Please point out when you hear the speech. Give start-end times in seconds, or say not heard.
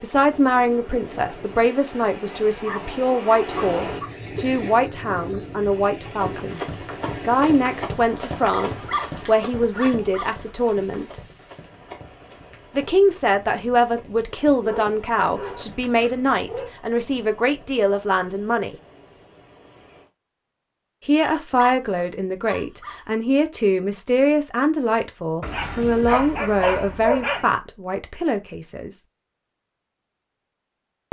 0.0-6.6, 7.2-11.2, 12.8-18.8, 21.1-28.9.